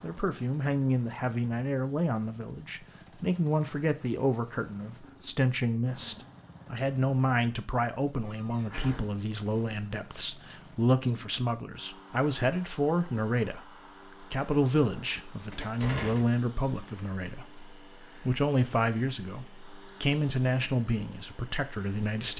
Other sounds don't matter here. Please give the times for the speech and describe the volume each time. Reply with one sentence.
The speech can be heard from 0.0 to 22.3 s, at a steady volume.